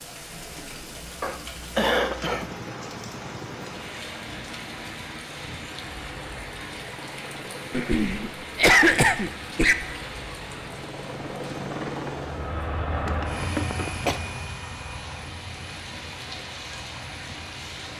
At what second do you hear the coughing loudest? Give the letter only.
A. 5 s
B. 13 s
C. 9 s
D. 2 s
C.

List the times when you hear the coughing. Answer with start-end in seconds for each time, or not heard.
1.2-2.5, 7.7-9.8, 13.1-14.2.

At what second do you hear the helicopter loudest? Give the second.
13 s.